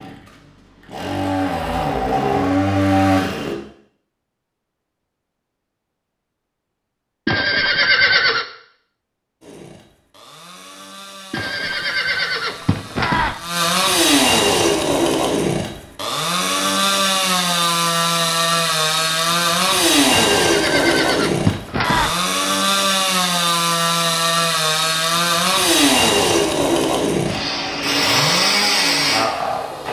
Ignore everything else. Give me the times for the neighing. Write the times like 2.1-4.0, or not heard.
7.2-8.4, 11.3-13.3, 20.1-22.1.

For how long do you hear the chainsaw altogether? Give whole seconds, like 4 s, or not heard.
24 s.